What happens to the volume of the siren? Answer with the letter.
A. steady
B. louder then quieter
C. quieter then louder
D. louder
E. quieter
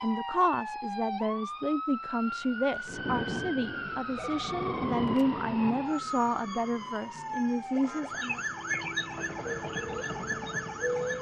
A.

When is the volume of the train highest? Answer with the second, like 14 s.
5 s.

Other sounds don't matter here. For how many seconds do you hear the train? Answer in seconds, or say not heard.
6 s.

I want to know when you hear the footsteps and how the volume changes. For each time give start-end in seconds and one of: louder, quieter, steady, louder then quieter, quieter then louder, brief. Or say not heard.
not heard.